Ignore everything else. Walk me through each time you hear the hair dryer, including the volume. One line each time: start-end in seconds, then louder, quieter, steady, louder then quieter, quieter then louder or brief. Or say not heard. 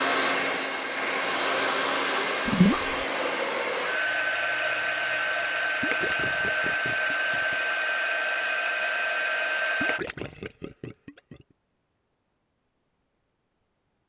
0.0-10.0 steady.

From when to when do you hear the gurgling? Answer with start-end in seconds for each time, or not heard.
2.5-3.0, 5.8-7.5, 9.8-11.3.